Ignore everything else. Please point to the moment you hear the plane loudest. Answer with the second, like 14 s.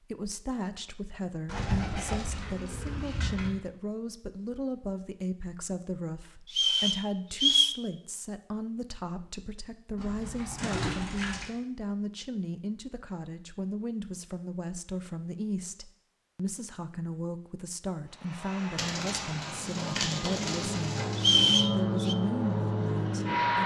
23 s.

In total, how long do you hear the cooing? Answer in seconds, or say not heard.
6 s.